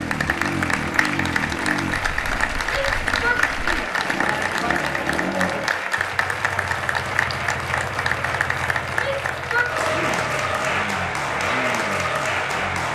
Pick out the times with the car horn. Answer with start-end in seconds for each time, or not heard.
not heard.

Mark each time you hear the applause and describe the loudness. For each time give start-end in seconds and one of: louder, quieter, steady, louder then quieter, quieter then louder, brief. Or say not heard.
0.0-12.9 steady.